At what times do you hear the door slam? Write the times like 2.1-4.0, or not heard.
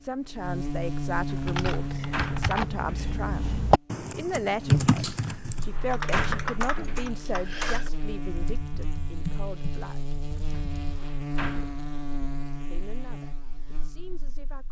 1.2-3.1, 5.2-7.2, 10.5-11.8.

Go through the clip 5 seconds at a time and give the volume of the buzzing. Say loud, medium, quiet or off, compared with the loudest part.
loud, medium, medium.